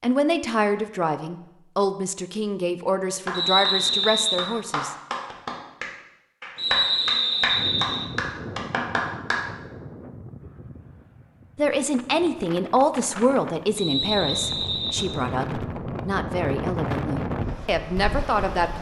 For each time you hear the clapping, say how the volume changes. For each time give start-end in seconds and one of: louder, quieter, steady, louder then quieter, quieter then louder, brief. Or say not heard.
3.2-9.4 louder.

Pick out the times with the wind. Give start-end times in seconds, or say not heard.
7.5-18.7.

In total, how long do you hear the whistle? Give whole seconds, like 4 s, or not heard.
4 s.